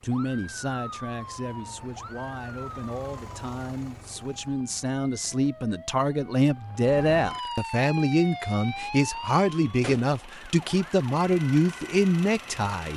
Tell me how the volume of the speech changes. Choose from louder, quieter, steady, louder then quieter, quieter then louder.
louder.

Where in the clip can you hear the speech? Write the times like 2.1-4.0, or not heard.
0.0-12.9.